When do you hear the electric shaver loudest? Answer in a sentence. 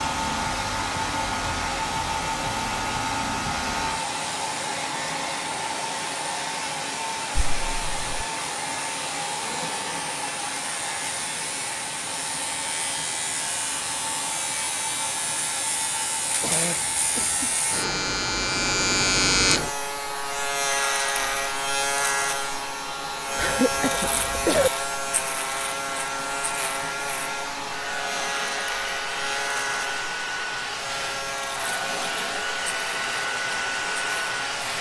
The loudest moment of the electric shaver is at 19 seconds.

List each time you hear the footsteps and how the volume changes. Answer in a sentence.
The footsteps can't be heard in this clip.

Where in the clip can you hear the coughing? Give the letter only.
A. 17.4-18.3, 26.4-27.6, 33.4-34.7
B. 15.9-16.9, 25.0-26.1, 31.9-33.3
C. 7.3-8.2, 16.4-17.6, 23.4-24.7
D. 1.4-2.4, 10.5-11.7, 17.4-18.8
C.